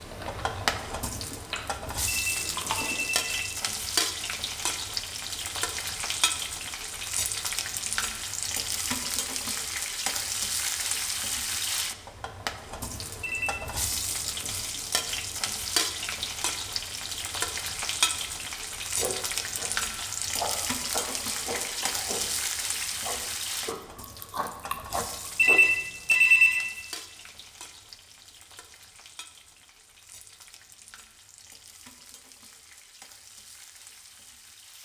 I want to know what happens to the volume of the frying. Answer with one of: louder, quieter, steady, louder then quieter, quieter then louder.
quieter.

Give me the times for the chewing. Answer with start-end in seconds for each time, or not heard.
0.0-3.1, 18.9-25.6.